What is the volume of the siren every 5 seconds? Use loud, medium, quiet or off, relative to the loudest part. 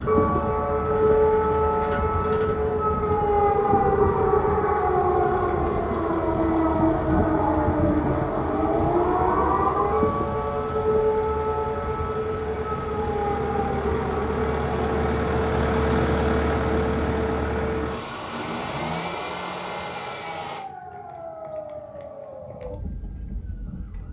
loud, loud, medium, quiet, quiet.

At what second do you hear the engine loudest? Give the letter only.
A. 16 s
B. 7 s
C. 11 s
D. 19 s
A.